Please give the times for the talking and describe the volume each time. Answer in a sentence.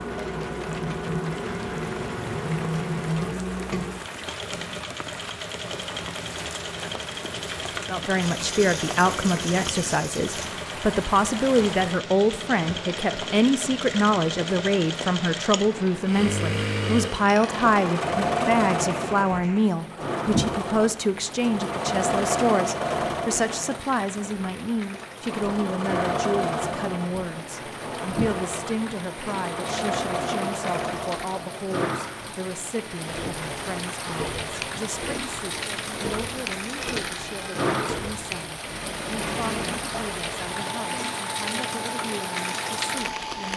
The talking can be heard from 7.8 to 43.5 s, getting quieter.